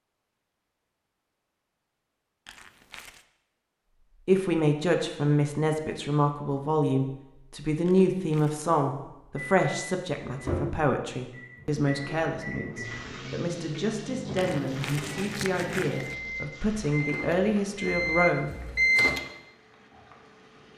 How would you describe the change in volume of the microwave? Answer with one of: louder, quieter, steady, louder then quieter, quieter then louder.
louder.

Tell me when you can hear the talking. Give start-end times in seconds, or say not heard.
4.2-18.6.